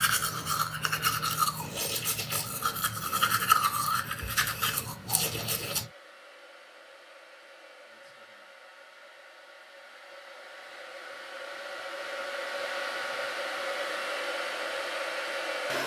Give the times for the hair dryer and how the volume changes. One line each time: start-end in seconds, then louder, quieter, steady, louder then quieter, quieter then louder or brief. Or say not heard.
0.0-15.8 louder.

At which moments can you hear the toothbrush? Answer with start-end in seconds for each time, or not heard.
0.0-5.9.